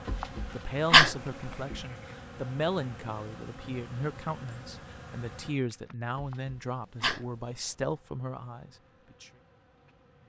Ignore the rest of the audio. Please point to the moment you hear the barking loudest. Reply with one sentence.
The loudest moment of the barking is at 1 second.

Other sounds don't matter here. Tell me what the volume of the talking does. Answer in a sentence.
The volume of the talking stays about the same.